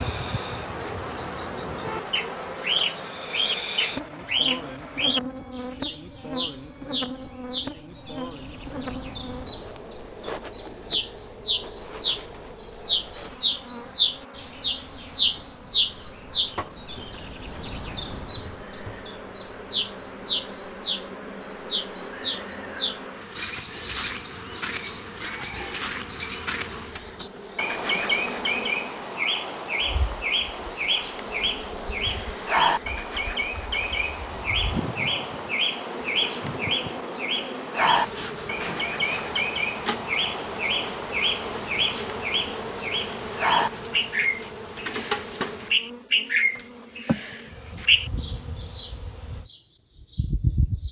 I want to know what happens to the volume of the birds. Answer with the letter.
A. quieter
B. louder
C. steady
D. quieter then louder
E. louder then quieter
E.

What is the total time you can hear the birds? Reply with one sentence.
You can hear the birds for 51 seconds altogether.